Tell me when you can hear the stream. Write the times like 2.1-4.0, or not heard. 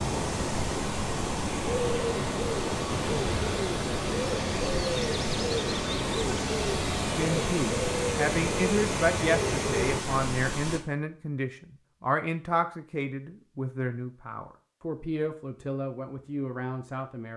0.0-10.8.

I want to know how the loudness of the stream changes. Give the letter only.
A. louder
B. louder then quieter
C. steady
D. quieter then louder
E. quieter
C.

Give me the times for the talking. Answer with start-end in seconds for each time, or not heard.
7.2-17.3.